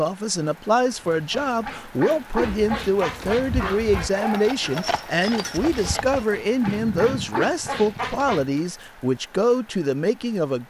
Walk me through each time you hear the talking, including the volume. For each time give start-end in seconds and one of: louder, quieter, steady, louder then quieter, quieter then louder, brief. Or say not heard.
0.0-10.6 steady.